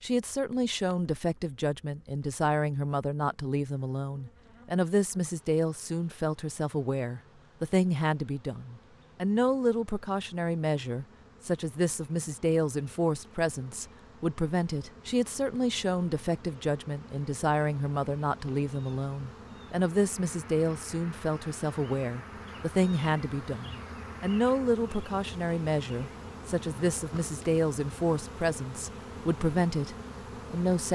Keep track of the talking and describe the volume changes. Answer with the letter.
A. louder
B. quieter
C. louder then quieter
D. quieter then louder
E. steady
E.